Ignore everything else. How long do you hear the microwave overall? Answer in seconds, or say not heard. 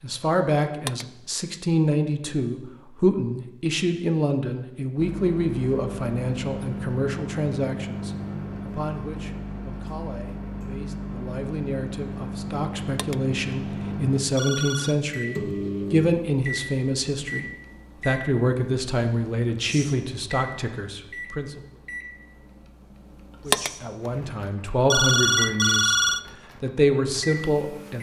23 s.